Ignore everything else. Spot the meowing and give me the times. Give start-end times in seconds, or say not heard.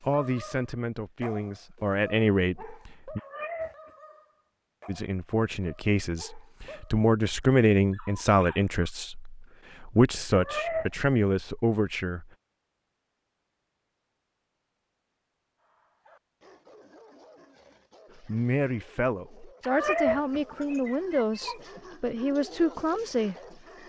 3.1-3.9, 10.3-10.9, 19.6-21.8.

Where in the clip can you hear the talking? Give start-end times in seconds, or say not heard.
0.0-3.2, 4.8-12.3, 18.2-23.6.